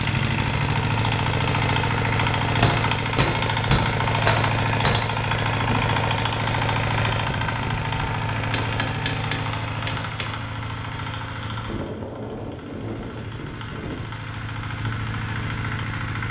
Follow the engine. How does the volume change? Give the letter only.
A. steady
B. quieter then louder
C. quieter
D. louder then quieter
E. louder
C.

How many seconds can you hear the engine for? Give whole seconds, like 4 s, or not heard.
16 s.